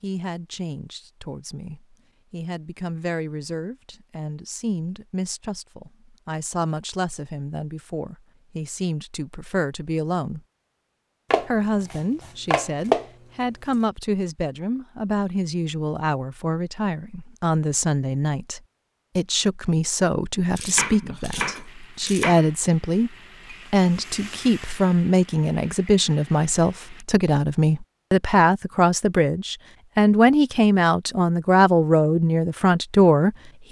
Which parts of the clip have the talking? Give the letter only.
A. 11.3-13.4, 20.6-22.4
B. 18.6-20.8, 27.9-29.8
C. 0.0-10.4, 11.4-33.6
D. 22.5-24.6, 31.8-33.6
C.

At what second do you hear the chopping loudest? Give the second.
13 s.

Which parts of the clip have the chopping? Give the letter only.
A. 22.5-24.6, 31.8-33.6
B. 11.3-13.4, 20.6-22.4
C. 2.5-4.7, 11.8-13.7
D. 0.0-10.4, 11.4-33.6
B.